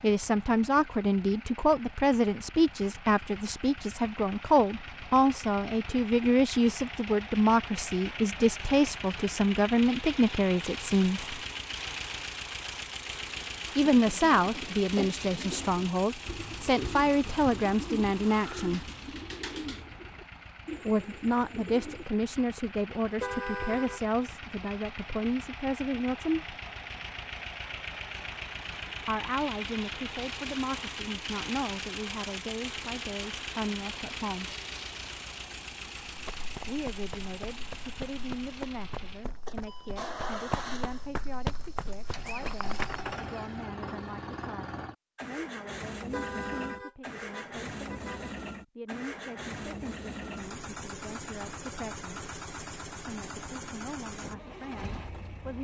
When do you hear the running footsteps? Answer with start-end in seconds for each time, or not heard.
36.0-43.1.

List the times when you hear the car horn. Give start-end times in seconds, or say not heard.
23.0-24.0, 45.9-48.4.